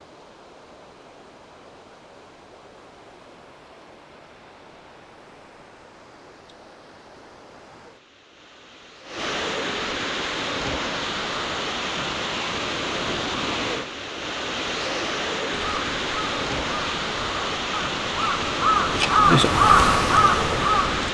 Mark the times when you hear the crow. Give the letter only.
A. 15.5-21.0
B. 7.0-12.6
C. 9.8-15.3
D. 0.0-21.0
A.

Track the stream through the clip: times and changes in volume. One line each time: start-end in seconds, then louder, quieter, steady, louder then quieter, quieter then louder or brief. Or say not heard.
0.0-21.0 louder.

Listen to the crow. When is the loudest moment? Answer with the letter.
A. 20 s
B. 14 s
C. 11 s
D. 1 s
A.